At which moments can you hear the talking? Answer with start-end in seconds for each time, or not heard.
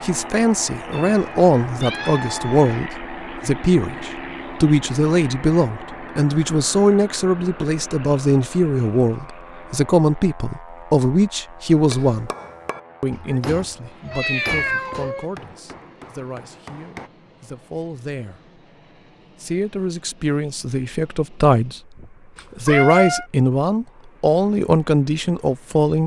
0.0-12.3, 13.0-18.5, 19.4-21.8, 22.6-26.0.